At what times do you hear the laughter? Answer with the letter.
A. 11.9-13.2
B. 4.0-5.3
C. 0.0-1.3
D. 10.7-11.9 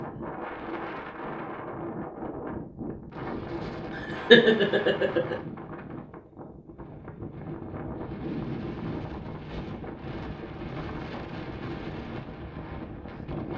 B.